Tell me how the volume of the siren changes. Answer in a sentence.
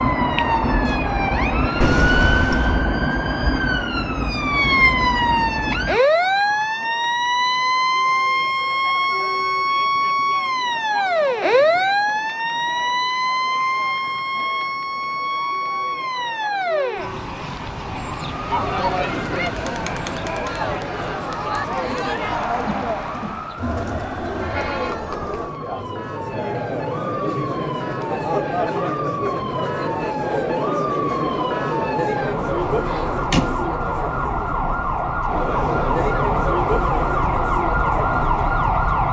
The loudness of the siren goes down, then up.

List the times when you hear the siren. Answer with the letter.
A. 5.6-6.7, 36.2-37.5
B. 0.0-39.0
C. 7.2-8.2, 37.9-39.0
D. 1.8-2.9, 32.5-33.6
B.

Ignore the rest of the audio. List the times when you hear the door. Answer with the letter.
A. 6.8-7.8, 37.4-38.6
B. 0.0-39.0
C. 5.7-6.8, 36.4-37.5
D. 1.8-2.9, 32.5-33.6
D.